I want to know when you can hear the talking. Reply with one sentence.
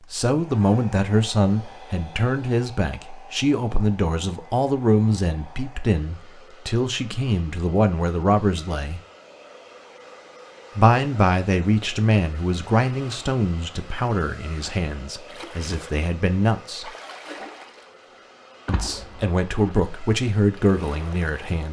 You can hear the talking from 0.1 to 9.0 s, from 10.8 to 16.9 s and from 18.6 to 21.6 s.